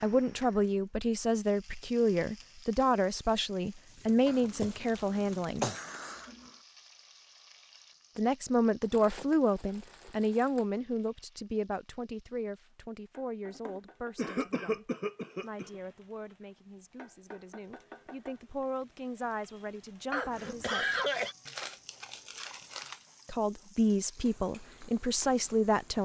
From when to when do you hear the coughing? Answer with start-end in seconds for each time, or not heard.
4.2-6.5, 13.7-15.7, 20.1-21.4.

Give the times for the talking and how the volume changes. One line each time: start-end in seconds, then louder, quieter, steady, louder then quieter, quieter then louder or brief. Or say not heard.
0.0-5.7 steady
8.2-20.9 quieter then louder
23.2-26.0 brief.